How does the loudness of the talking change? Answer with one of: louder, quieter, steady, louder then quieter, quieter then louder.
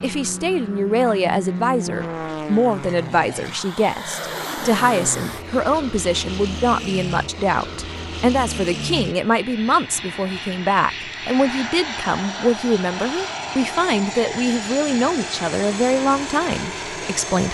steady.